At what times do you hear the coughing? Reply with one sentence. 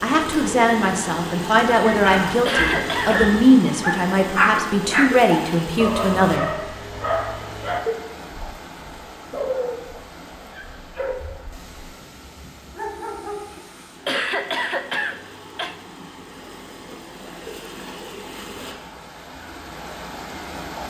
The coughing can be heard from 2.5 to 3.2 s and from 14.1 to 15.8 s.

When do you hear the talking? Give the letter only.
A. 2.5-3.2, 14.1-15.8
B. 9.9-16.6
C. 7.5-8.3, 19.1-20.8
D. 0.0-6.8
D.